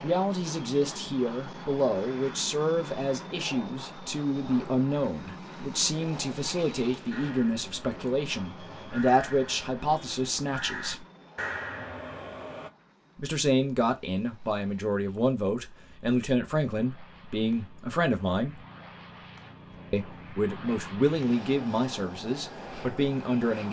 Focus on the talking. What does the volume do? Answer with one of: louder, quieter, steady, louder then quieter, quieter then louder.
steady.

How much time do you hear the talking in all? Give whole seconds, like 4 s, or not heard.
20 s.